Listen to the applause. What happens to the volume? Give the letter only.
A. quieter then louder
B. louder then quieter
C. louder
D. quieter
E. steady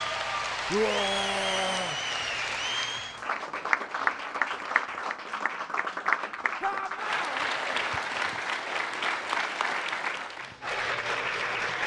E.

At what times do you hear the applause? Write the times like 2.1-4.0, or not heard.
0.0-11.8.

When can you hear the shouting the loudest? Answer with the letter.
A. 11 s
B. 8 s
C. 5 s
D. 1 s
D.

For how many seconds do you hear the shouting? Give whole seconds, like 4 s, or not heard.
2 s.